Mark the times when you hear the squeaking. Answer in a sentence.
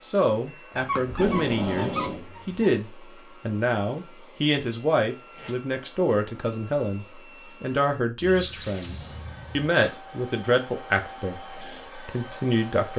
You can hear the squeaking from 0.8 to 2.7 s and from 8.2 to 9.7 s.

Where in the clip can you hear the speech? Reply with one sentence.
You can hear the speech from 0.0 to 12.9 s.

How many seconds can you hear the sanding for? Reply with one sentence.
You can't hear the sanding here.